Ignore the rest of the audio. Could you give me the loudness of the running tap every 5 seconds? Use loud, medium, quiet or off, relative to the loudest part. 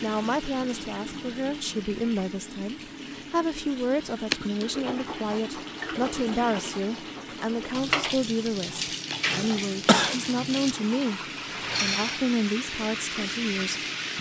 medium, loud, loud.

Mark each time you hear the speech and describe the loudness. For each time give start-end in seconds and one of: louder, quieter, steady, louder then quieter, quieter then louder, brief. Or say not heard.
0.0-11.2 steady
11.8-14.1 brief.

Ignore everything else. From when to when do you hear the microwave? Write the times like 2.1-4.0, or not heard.
not heard.